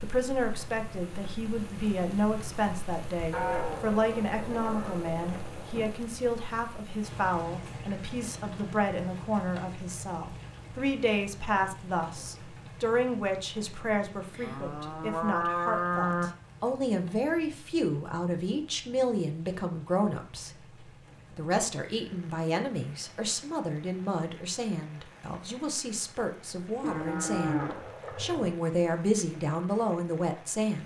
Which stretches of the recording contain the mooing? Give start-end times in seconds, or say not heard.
3.3-6.0, 14.4-16.3, 26.8-28.6.